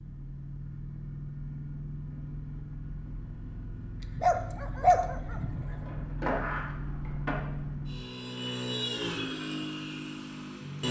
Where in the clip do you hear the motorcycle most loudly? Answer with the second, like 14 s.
9 s.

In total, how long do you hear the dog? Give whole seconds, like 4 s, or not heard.
2 s.